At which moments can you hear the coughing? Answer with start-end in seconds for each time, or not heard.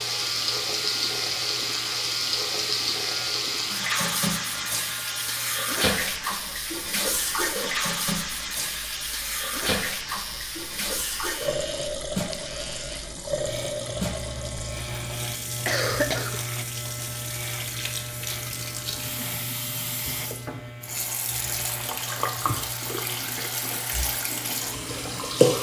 15.7-16.4.